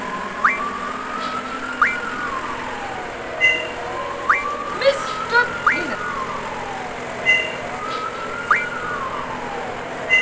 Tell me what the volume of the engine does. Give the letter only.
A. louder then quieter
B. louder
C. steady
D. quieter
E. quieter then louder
C.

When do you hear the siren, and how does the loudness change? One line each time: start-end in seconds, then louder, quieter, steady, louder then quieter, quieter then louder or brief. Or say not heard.
0.2-10.1 steady.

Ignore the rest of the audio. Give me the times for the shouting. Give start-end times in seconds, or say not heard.
4.8-6.0.